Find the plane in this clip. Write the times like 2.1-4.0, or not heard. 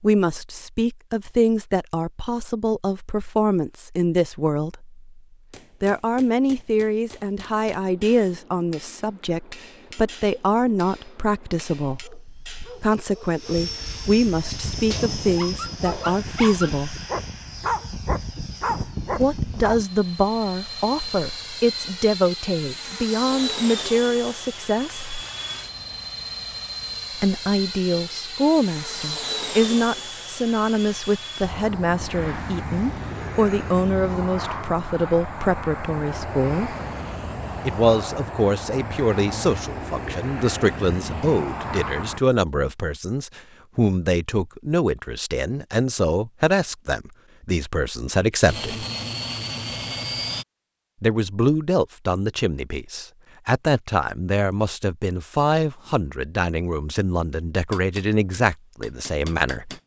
7.4-42.2, 48.5-50.5.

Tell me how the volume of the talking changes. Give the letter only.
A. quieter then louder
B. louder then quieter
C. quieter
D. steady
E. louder
D.